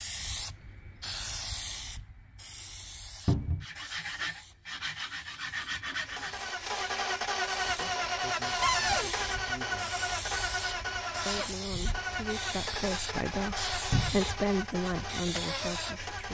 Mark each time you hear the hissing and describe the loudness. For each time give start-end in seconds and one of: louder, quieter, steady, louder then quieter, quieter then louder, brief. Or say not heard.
0.0-16.2 quieter then louder.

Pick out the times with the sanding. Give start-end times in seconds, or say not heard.
3.6-6.3.